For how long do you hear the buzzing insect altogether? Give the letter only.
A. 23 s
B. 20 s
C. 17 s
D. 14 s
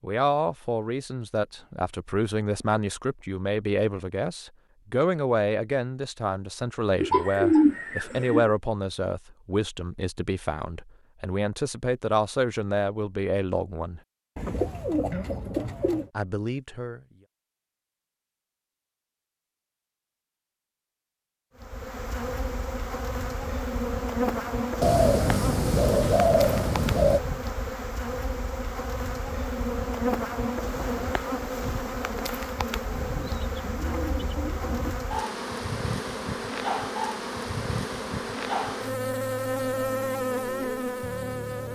B.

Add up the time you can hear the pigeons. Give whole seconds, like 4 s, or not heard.
8 s.